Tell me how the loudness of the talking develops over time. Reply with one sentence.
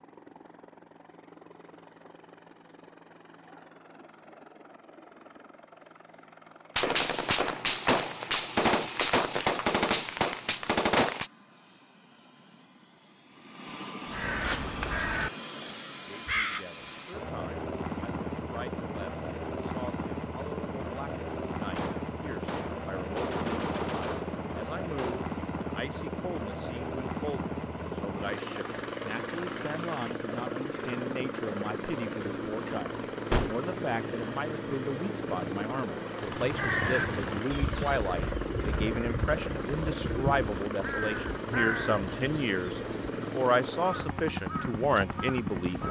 The loudness of the talking goes up.